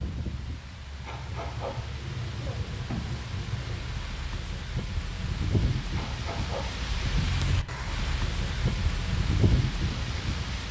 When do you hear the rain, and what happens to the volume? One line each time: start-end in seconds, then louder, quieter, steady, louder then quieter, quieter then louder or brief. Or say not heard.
0.0-10.6 louder.